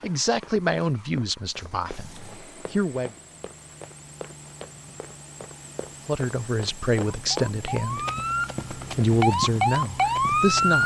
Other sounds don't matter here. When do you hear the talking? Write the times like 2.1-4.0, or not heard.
0.0-3.1, 6.0-8.1, 8.8-10.8.